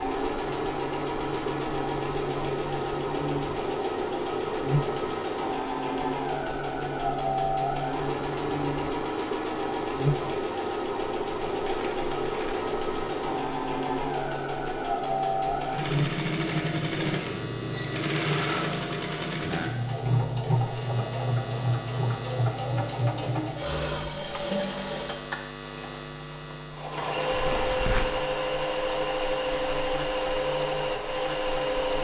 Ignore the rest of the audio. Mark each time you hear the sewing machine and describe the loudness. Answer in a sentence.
You can hear the sewing machine from 0.0 to 31.9 s, at a steady volume.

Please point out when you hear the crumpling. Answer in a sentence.
The crumpling can be heard from 11.7 to 12.8 s and from 27.3 to 28.1 s.